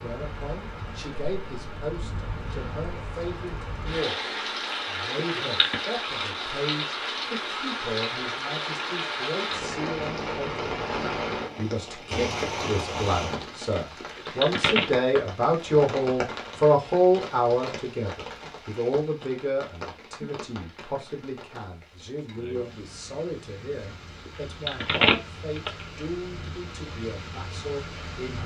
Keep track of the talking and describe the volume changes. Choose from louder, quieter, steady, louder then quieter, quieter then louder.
louder then quieter.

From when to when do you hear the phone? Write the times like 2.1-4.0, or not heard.
5.2-5.8, 14.0-14.8, 24.2-25.9.